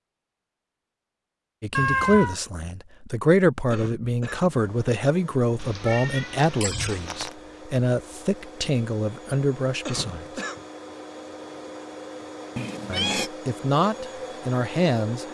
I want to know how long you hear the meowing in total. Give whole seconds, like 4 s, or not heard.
3 s.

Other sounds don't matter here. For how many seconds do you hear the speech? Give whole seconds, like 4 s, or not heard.
11 s.